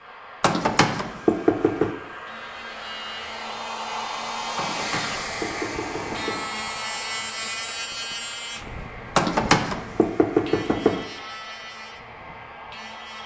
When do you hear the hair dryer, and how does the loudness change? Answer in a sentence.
The hair dryer can be heard from 0.0 to 13.2 s, getting louder then quieter.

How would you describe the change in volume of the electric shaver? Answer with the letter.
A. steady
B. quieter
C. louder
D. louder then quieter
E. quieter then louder
D.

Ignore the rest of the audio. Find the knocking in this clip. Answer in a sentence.
You can hear the knocking from 0.4 to 1.9 s, from 4.5 to 6.5 s and from 9.2 to 11.1 s.